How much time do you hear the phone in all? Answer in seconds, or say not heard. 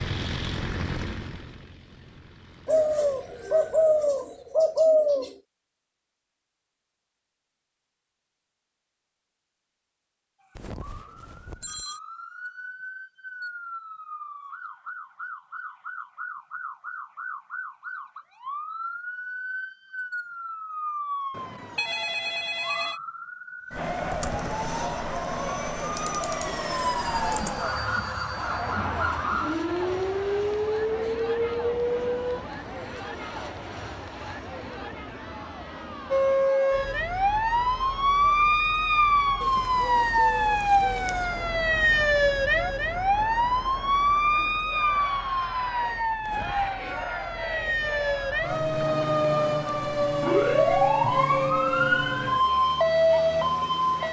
4 s.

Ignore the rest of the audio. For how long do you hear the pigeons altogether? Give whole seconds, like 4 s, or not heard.
5 s.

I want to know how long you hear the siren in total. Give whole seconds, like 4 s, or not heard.
40 s.